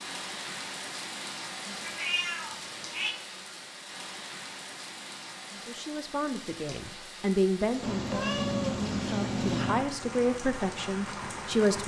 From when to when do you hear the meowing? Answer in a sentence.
You can hear the meowing from 1.8 to 3.1 s and from 7.8 to 9.8 s.